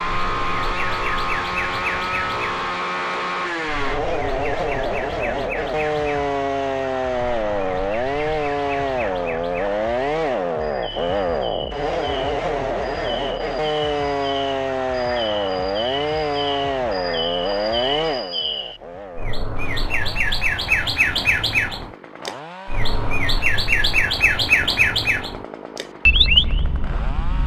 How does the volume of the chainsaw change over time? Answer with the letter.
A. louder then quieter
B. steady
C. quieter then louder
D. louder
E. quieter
E.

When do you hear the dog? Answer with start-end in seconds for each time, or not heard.
not heard.